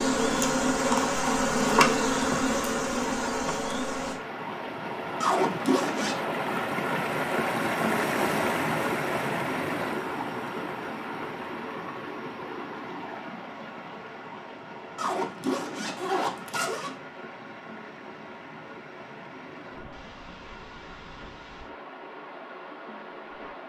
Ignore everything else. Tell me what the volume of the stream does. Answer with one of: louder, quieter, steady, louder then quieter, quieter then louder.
quieter.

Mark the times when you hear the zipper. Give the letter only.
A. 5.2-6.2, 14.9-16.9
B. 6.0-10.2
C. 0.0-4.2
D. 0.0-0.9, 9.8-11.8
A.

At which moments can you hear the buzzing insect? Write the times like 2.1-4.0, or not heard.
0.0-4.2.